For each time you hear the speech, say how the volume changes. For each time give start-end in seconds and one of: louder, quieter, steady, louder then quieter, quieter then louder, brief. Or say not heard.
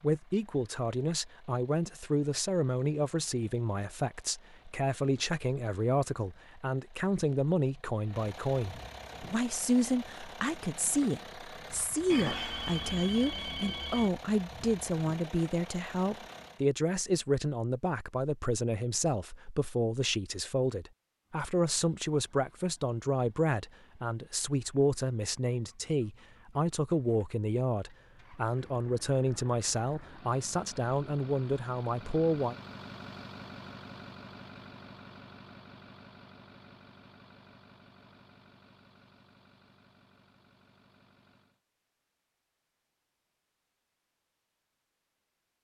0.0-32.5 steady.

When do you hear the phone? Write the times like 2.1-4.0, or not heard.
12.1-14.1.